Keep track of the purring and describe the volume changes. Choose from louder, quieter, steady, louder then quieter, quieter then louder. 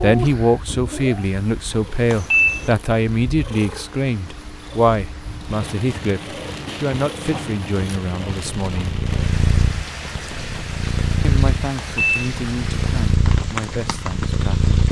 louder.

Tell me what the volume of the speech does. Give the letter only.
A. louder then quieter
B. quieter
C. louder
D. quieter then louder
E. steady
B.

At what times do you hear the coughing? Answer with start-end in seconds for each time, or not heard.
not heard.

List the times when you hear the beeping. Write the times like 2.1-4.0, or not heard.
2.1-2.7, 11.8-12.2.